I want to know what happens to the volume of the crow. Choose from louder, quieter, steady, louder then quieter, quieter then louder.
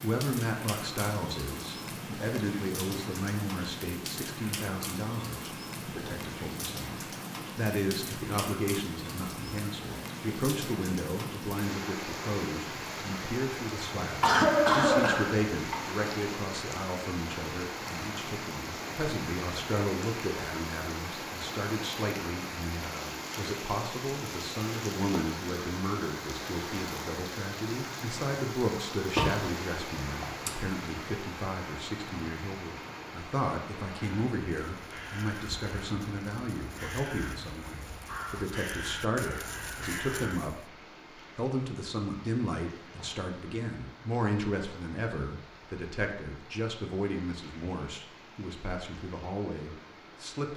louder.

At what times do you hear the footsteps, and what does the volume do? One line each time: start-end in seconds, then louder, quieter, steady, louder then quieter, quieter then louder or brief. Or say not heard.
not heard.